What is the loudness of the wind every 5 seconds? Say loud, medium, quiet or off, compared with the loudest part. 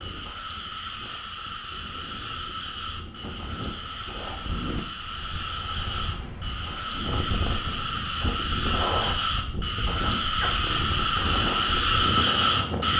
medium, loud, loud.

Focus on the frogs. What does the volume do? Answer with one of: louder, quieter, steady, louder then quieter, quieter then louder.
louder.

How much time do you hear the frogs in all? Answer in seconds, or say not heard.
13 s.